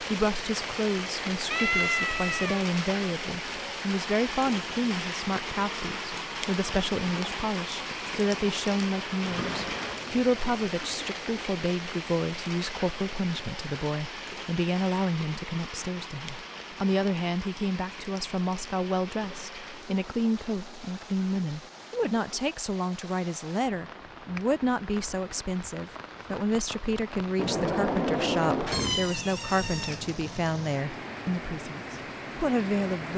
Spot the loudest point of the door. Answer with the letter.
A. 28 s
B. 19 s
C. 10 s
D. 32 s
A.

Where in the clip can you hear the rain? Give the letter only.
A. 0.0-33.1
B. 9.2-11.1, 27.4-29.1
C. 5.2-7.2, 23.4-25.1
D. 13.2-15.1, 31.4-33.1
A.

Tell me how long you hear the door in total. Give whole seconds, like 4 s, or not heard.
4 s.